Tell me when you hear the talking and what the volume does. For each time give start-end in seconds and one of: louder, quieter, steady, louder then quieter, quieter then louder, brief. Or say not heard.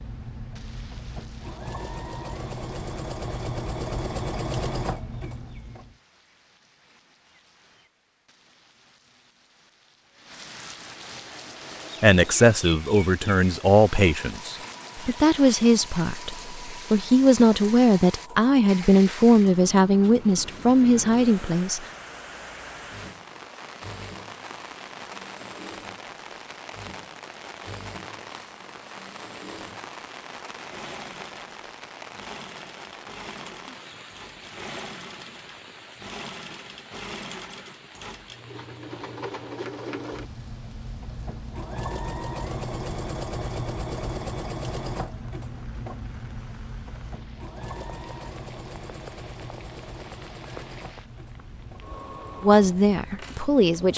12.0-21.8 steady
52.4-53.9 brief.